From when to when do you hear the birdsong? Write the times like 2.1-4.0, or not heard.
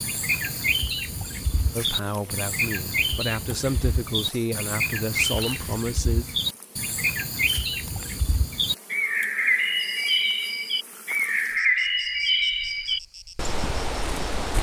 0.0-14.5.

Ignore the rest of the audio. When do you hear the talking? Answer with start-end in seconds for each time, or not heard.
1.7-6.2.